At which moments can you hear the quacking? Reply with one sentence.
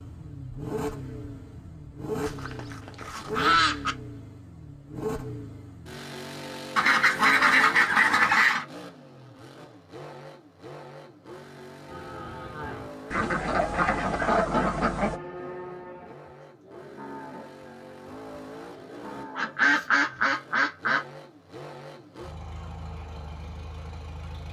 You can hear the quacking from 2.2 to 4.0 s, from 6.8 to 8.7 s, from 13.1 to 15.2 s and from 19.4 to 21.1 s.